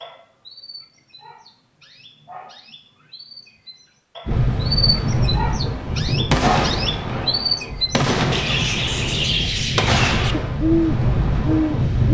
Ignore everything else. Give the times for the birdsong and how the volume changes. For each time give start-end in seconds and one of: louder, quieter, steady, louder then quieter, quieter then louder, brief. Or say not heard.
0.0-12.0 louder.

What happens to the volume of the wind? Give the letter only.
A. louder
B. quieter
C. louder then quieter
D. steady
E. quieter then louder
E.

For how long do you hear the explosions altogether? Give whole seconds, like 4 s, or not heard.
4 s.